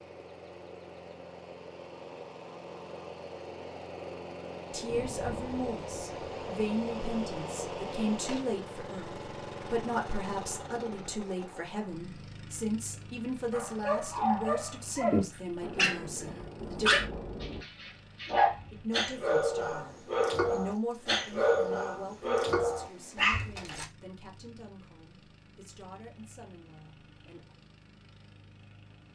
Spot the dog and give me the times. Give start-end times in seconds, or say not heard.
13.5-23.9.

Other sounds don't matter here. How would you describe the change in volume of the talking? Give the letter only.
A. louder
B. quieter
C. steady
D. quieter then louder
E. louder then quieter
B.